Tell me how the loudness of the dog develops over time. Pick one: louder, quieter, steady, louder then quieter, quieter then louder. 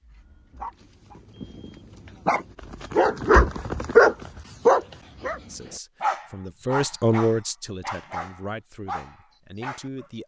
louder then quieter.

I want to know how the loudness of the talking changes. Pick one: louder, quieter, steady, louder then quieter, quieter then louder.
louder then quieter.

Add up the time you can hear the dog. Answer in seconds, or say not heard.
10 s.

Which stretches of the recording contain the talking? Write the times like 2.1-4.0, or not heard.
5.5-10.2.